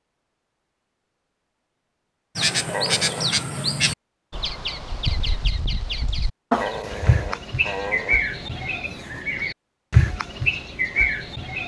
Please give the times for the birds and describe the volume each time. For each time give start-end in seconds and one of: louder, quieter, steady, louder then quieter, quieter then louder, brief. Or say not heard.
2.4-11.6 quieter then louder.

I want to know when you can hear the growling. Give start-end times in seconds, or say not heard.
2.6-3.3, 6.5-8.2.